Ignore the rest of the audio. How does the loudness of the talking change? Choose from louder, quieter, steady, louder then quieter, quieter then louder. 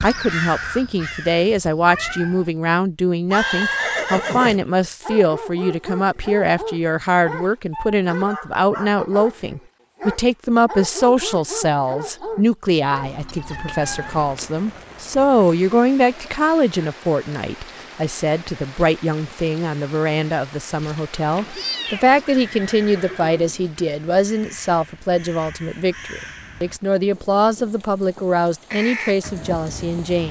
steady.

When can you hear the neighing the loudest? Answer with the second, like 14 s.
4 s.